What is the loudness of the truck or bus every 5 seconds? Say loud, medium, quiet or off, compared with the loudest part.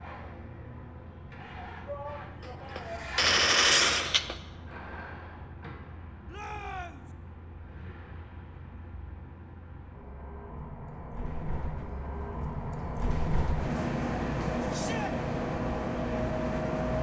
quiet, quiet, loud, loud.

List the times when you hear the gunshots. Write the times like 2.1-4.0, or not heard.
2.4-4.3.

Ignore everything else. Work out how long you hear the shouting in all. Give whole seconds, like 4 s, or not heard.
3 s.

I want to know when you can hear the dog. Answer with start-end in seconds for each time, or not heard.
not heard.